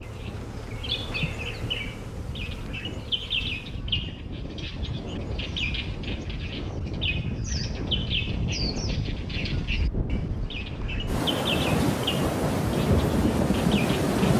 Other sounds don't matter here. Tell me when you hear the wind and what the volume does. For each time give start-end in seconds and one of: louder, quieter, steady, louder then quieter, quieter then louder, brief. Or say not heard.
0.0-14.3 louder.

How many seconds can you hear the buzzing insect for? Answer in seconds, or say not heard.
4 s.